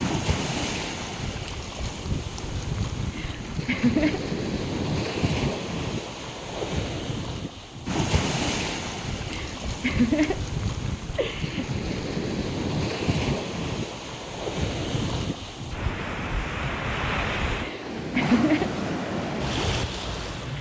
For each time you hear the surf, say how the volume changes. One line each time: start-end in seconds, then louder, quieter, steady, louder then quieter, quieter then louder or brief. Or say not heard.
0.0-20.5 steady.